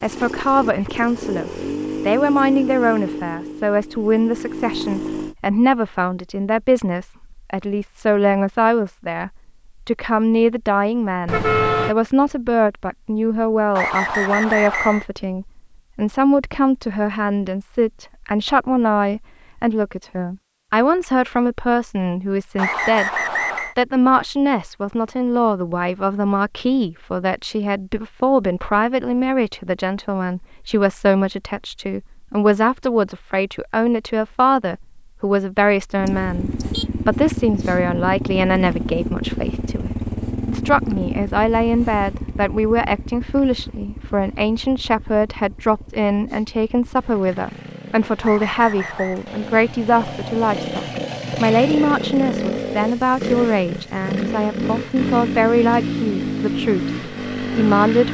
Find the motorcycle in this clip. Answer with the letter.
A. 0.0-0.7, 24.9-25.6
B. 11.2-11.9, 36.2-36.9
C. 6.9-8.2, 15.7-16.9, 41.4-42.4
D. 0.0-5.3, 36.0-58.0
D.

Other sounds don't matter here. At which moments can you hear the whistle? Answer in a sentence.
The whistle can be heard from 13.8 to 15.1 s, from 22.6 to 23.8 s and from 48.2 to 49.2 s.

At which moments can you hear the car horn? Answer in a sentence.
You can hear the car horn from 11.2 to 11.9 s and from 36.2 to 36.9 s.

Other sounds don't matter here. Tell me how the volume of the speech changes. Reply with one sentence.
The volume of the speech stays about the same.